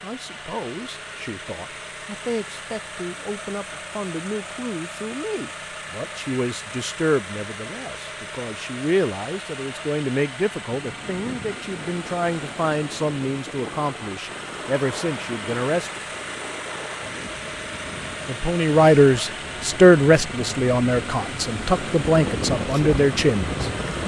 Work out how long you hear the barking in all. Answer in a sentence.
The barking can't be heard in this clip.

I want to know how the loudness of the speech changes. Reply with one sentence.
The loudness of the speech goes up.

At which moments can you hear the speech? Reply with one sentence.
The speech can be heard from 0.0 to 16.0 s and from 18.2 to 23.6 s.